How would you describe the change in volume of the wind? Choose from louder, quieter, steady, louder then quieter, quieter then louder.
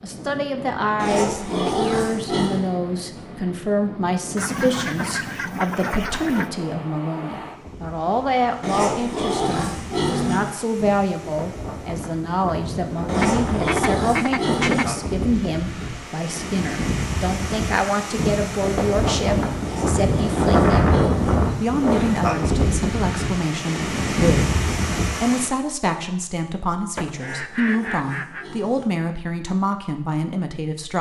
louder.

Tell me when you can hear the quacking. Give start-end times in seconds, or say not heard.
4.3-6.5, 13.2-14.8, 26.9-28.4.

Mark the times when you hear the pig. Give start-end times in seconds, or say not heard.
0.9-2.6, 8.6-10.6, 13.1-15.0, 19.6-21.4, 27.1-29.0.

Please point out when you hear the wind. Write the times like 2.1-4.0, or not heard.
0.0-25.5.